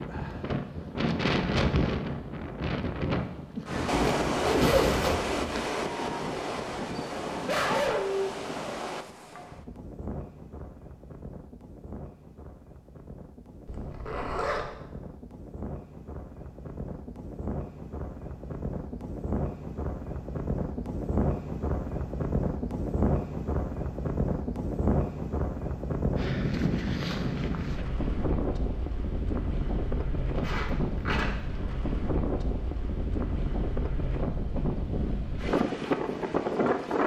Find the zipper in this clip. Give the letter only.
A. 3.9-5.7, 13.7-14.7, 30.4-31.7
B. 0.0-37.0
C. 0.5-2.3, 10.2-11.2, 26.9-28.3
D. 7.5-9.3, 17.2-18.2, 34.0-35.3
A.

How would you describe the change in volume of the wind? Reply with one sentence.
The volume of the wind goes down, then up.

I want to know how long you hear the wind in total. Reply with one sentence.
You can hear the wind for 37 seconds altogether.